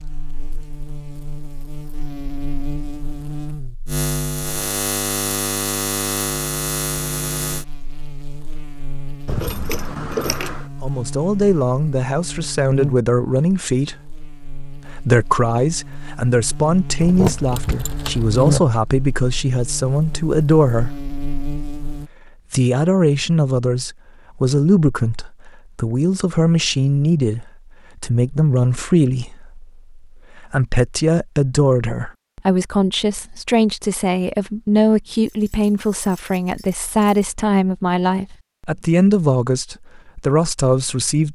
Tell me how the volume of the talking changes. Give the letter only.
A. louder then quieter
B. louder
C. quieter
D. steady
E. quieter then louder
D.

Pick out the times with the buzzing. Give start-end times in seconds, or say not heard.
0.0-22.1.